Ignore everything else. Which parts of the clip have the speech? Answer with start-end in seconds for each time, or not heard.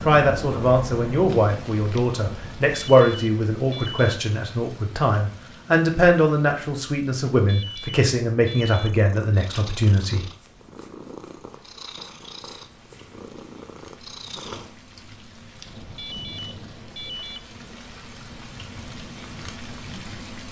0.0-10.2.